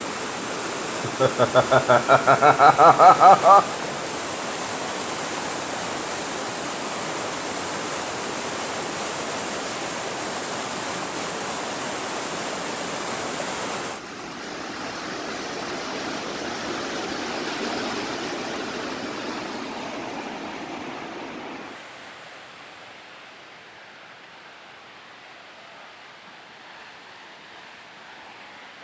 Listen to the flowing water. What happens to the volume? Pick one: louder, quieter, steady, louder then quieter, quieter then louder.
quieter.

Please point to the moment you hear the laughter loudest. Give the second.
3 s.